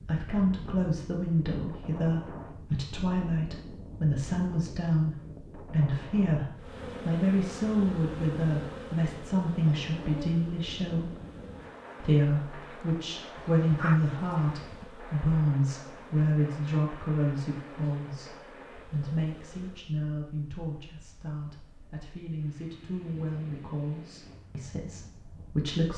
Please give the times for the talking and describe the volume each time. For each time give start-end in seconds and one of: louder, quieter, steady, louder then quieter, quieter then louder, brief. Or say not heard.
0.1-11.1 steady
12.0-25.9 quieter.